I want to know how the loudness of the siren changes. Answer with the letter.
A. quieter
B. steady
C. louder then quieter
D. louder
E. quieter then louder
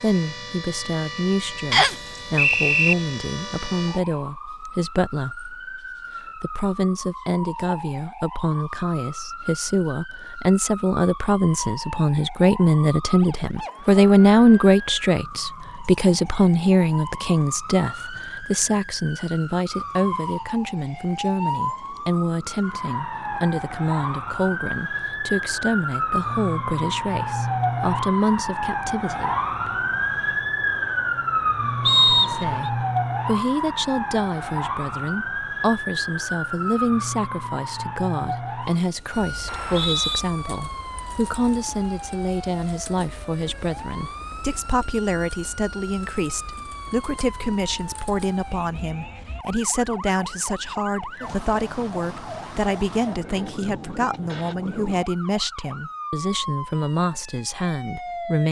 C.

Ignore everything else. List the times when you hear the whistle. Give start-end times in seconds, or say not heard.
1.7-3.0, 31.9-32.7, 39.5-40.2.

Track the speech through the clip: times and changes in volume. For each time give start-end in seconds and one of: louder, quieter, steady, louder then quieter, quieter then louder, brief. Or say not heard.
0.0-29.4 louder then quieter
32.2-58.4 steady.